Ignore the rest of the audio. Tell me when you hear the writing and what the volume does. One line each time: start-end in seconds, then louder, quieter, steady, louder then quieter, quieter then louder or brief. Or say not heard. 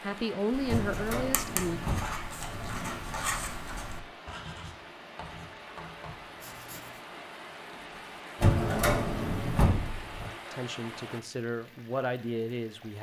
0.5-7.0 quieter.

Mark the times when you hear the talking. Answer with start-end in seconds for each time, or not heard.
0.0-1.8, 10.5-12.9.